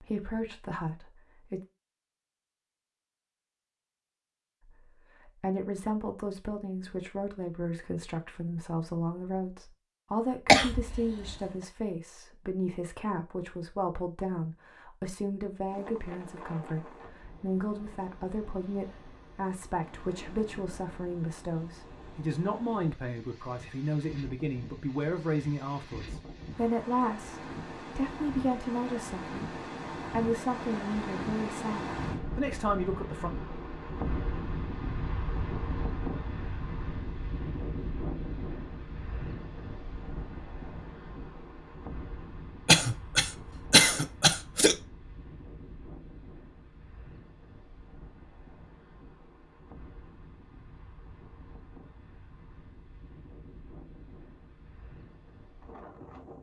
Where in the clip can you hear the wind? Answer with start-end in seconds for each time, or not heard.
15.7-56.3.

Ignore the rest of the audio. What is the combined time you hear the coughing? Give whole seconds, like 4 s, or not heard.
3 s.